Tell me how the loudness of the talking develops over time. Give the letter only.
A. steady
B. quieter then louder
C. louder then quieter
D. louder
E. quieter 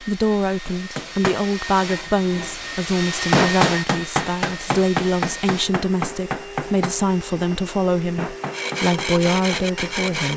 A.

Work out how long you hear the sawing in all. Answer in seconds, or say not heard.
2 s.